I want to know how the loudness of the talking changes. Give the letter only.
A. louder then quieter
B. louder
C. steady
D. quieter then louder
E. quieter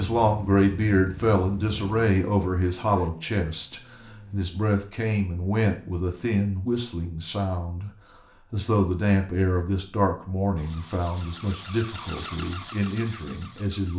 E.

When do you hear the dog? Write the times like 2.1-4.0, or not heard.
not heard.